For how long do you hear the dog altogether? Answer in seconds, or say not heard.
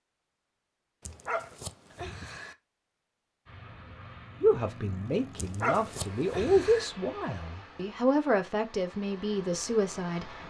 3 s.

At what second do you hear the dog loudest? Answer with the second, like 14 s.
6 s.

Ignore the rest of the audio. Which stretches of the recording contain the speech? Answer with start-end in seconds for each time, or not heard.
4.4-10.3.